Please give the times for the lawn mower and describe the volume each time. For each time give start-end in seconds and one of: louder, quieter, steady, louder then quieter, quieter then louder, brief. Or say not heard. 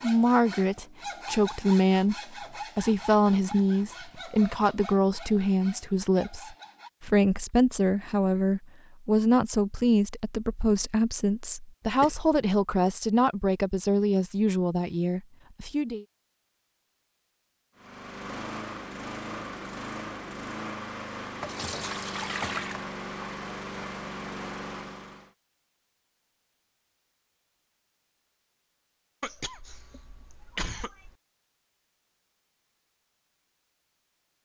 17.8-25.3 steady.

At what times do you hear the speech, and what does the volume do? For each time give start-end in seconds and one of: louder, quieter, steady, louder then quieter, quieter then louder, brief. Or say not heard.
0.0-16.1 steady.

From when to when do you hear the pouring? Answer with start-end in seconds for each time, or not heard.
21.4-22.9.